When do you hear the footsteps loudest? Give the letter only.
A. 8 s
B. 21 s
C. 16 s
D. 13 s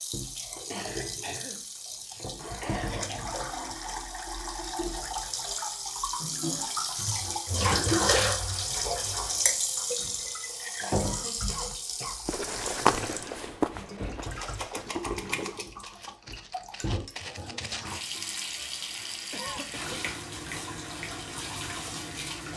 D.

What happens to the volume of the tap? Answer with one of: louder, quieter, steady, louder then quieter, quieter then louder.
louder then quieter.